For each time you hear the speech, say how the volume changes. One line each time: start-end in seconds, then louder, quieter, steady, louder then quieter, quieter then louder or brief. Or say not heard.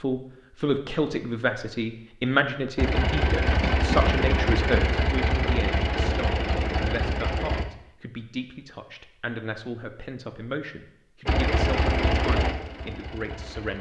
0.0-13.7 quieter.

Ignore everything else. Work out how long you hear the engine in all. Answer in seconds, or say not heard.
7 s.